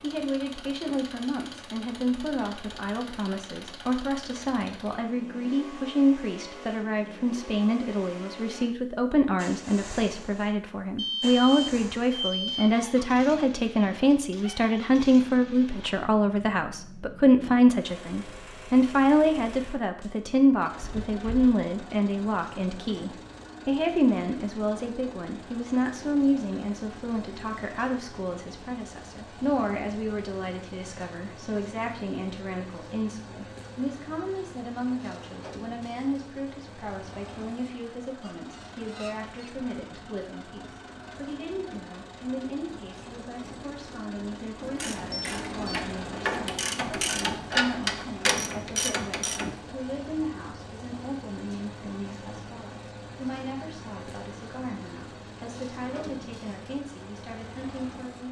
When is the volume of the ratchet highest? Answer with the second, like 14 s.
48 s.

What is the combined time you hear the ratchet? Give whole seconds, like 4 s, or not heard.
5 s.